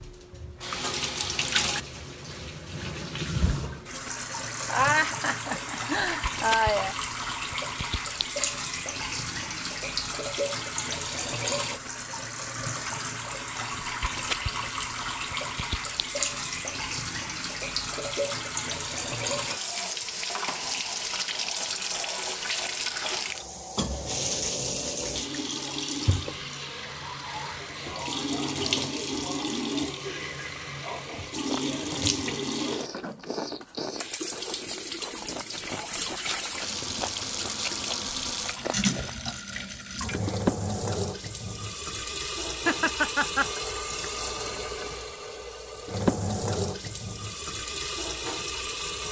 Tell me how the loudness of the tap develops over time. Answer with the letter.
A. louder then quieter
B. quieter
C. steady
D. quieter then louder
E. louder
C.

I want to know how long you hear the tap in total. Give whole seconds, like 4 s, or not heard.
49 s.